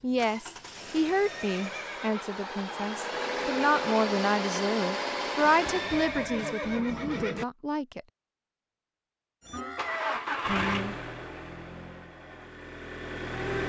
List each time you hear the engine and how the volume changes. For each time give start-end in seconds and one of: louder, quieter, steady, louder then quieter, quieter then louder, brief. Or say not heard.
0.0-6.2 louder
9.4-13.6 quieter then louder.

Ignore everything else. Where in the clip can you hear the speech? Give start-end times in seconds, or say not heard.
0.0-8.0, 10.4-10.9.